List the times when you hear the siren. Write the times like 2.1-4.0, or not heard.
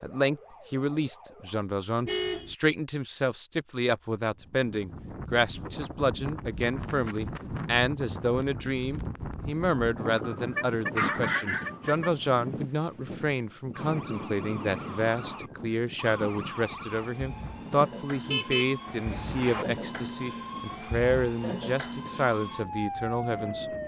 0.0-1.6, 13.7-23.8.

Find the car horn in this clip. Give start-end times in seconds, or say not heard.
2.0-2.5, 10.6-12.1, 18.2-19.6.